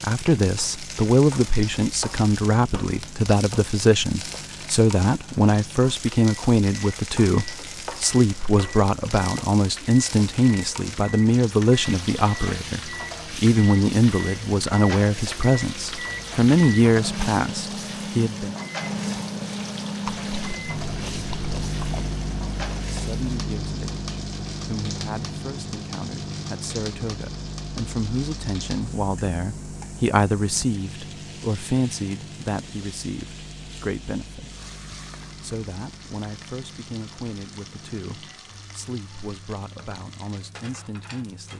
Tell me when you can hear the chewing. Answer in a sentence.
The chewing can be heard from 20.1 to 22.1 s.